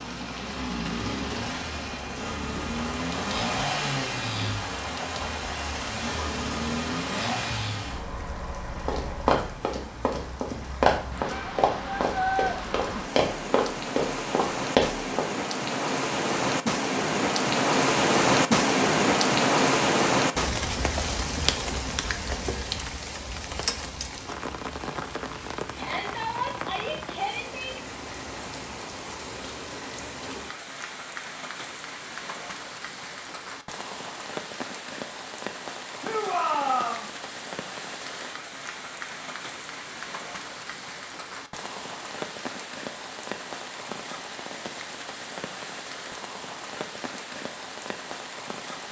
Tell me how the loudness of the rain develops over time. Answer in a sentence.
The loudness of the rain goes up, then down.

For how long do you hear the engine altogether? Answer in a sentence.
You can hear the engine for 9 seconds altogether.